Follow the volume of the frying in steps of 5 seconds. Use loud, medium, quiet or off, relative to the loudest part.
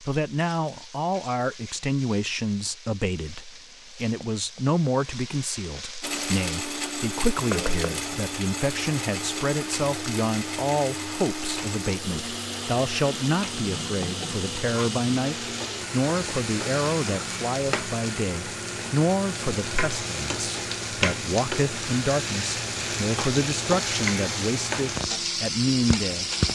quiet, medium, medium, medium, loud, loud.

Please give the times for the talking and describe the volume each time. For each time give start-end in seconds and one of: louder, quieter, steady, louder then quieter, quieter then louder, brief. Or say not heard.
0.0-26.2 steady.